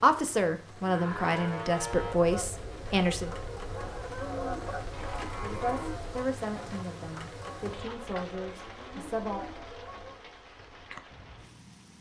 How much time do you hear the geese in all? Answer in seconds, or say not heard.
8 s.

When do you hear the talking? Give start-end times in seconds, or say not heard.
0.0-3.4, 5.4-9.4.